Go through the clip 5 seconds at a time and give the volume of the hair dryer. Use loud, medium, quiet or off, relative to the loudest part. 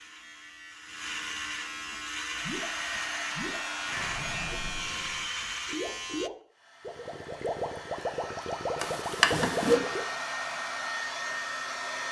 medium, medium, loud.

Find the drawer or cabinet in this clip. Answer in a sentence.
You can hear the drawer or cabinet from 8.8 to 9.8 s.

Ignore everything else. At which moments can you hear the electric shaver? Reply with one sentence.
You can hear the electric shaver from 0.0 to 6.3 s.